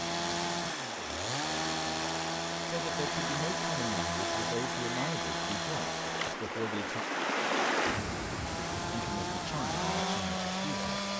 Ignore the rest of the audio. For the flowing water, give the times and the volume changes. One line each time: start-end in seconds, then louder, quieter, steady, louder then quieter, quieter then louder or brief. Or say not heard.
0.1-11.1 louder then quieter.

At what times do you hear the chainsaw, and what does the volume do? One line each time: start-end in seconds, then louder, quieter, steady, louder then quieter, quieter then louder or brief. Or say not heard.
0.0-6.3 steady
8.4-11.1 brief.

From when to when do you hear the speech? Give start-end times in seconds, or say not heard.
2.6-7.0, 8.9-10.9.